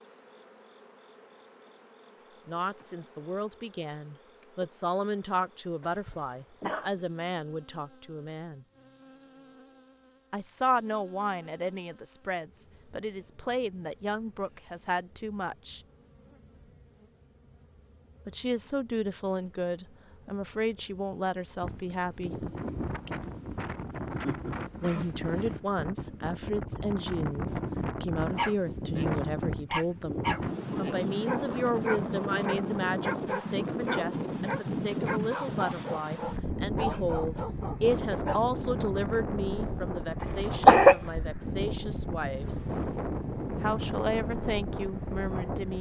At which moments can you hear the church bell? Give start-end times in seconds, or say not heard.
not heard.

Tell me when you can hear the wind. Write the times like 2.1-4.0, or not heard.
21.6-45.7.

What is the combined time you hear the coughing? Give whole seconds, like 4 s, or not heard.
3 s.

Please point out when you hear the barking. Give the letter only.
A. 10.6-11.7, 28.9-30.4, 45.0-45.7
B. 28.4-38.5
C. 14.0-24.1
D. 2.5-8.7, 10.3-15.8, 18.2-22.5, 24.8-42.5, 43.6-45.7
B.